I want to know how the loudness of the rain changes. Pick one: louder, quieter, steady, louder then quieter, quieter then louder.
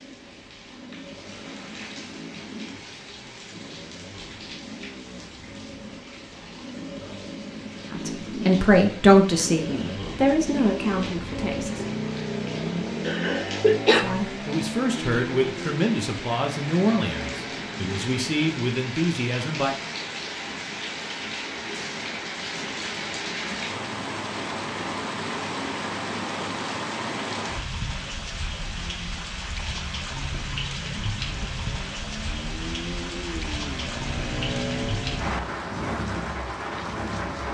louder.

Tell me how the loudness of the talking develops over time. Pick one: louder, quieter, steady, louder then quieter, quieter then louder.
quieter.